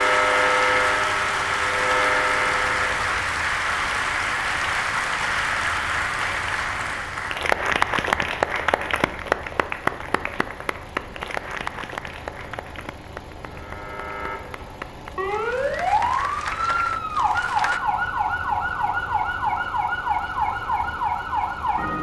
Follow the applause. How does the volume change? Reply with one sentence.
The volume of the applause goes down.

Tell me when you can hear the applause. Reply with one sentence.
The applause can be heard from 0.0 to 17.8 s.